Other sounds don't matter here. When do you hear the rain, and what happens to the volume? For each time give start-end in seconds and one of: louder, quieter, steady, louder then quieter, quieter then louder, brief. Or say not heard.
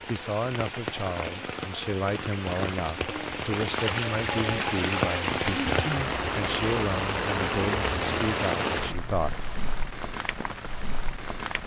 0.0-11.6 louder then quieter.